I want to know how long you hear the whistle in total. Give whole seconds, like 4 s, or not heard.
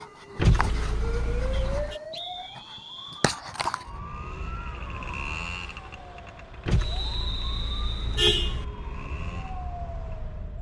3 s.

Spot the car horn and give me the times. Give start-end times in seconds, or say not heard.
0.3-2.0, 6.7-8.7.